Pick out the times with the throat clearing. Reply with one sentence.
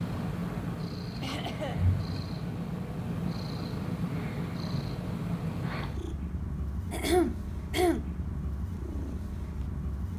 The throat clearing can be heard from 1.2 to 1.9 s and from 6.9 to 8.1 s.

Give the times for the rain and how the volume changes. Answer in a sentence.
The rain can't be heard in this clip.